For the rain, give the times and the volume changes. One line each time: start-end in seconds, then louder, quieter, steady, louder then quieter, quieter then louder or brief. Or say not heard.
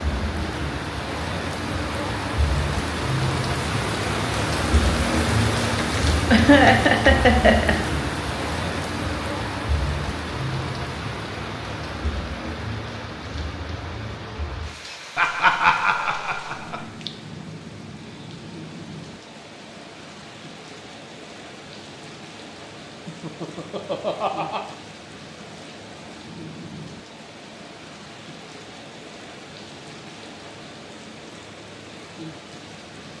0.0-33.1 quieter.